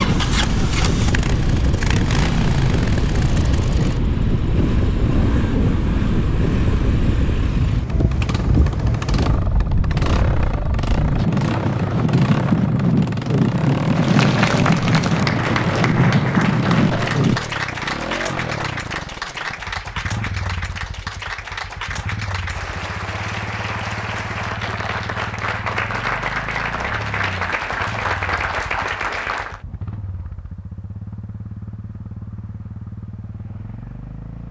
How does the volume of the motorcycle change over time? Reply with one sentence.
The loudness of the motorcycle goes down.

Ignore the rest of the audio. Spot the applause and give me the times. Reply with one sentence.
The applause can be heard from 13.9 to 29.6 s.